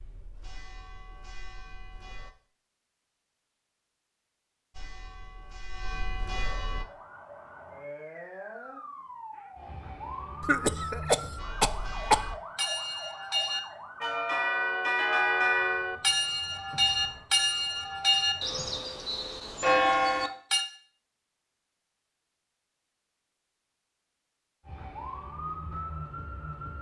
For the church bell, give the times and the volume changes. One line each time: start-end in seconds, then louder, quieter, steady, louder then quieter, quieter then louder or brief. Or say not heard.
0.0-2.4 brief
4.8-6.8 brief
11.3-20.6 louder.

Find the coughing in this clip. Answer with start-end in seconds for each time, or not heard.
10.4-12.3.